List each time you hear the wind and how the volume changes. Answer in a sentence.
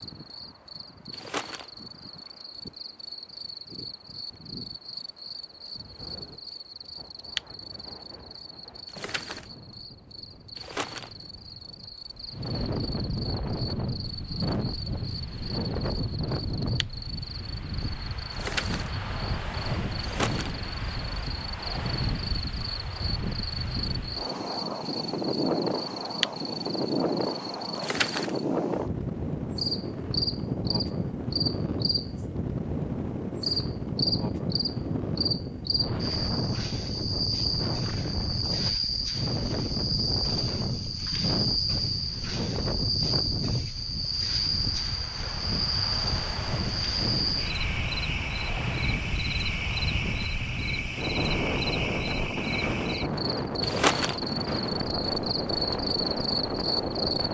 You can hear the wind from 0.0 to 57.2 s, getting louder.